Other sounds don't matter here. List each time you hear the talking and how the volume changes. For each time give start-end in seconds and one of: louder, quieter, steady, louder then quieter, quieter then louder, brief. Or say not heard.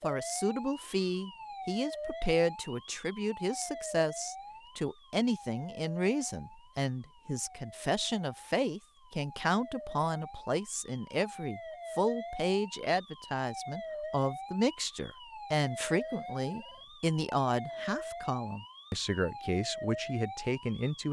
0.0-21.0 steady.